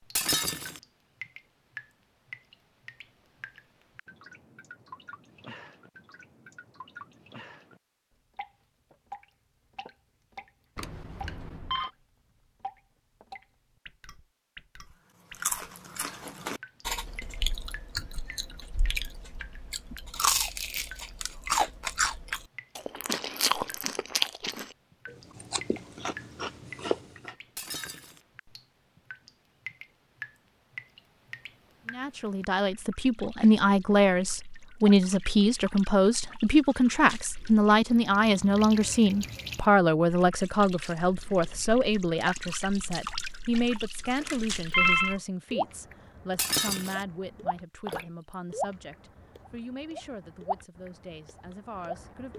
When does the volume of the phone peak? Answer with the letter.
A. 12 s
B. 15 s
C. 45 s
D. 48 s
C.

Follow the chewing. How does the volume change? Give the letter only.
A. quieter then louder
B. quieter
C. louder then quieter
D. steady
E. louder
C.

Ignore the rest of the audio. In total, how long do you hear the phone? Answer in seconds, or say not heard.
2 s.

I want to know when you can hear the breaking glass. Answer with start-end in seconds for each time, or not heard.
0.1-0.8, 27.6-28.2, 46.4-47.0.